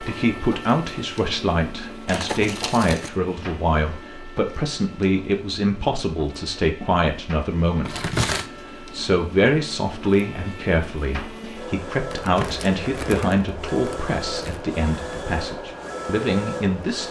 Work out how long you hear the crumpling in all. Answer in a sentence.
You can hear the crumpling for 4 seconds altogether.